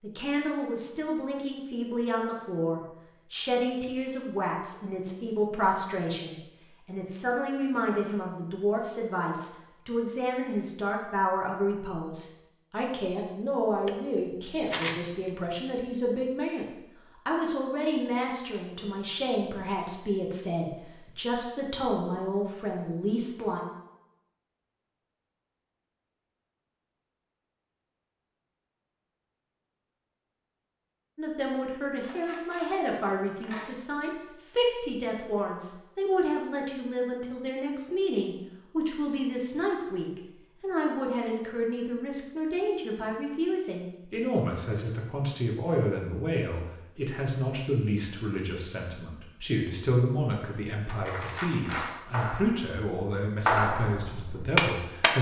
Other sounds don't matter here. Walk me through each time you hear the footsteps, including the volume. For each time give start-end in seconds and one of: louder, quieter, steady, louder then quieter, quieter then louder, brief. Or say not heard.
not heard.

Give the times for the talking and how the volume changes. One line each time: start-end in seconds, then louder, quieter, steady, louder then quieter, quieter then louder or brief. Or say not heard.
0.0-16.6 steady
17.2-23.6 steady
31.1-55.1 steady.